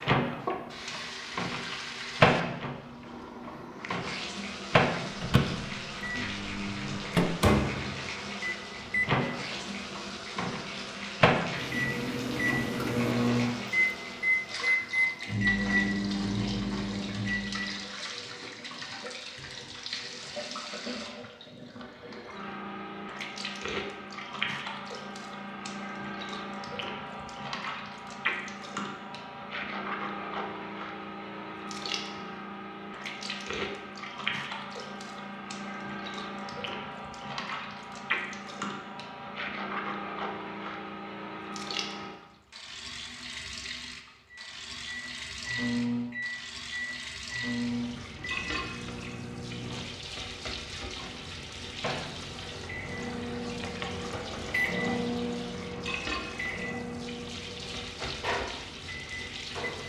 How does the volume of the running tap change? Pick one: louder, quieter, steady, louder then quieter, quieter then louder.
steady.